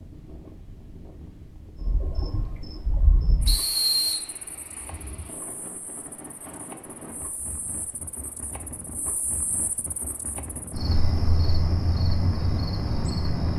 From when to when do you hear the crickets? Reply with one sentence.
The crickets can be heard from 1.8 to 13.5 s.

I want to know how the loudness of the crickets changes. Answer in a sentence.
The loudness of the crickets goes down, then up.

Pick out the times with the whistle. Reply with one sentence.
You can hear the whistle from 3.5 to 4.2 s.